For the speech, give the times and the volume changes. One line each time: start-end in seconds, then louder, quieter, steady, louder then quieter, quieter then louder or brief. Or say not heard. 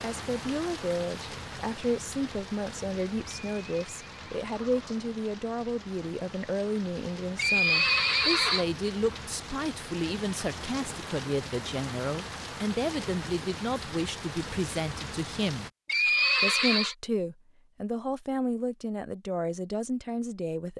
0.0-20.7 steady.